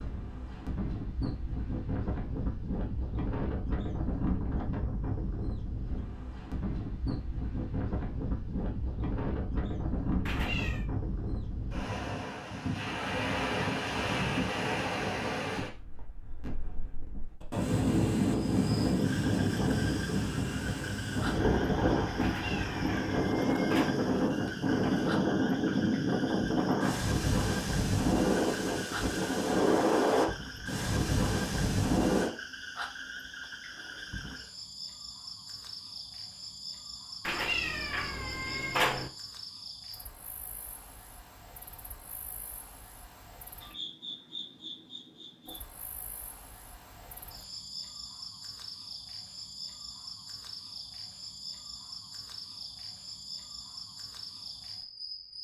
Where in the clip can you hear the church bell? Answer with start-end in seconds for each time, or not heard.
not heard.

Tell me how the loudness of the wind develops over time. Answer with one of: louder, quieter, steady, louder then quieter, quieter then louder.
louder.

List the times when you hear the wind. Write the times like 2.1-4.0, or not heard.
0.0-32.3.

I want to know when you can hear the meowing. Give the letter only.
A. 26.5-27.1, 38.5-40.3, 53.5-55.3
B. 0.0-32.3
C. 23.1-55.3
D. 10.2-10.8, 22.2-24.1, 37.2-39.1
D.